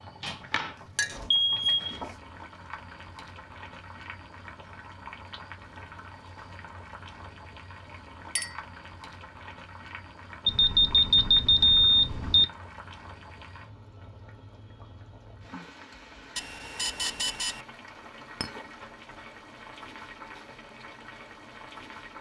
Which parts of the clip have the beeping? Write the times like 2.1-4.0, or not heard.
0.2-2.1, 10.4-12.4, 16.4-17.6.